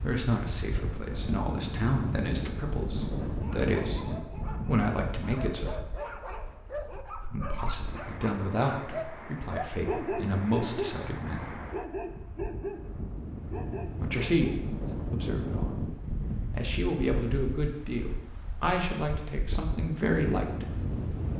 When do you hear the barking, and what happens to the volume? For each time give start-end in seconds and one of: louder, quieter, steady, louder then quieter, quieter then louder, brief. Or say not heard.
3.0-11.1 louder
11.7-12.9 brief
13.5-14.7 brief.